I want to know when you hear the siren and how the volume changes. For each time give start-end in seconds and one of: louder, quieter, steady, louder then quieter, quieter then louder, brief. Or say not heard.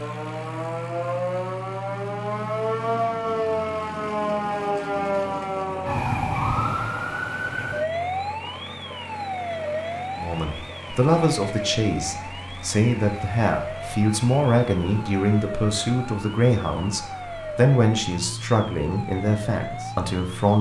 0.0-20.5 quieter.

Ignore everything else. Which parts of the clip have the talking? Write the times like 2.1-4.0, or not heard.
10.2-20.5.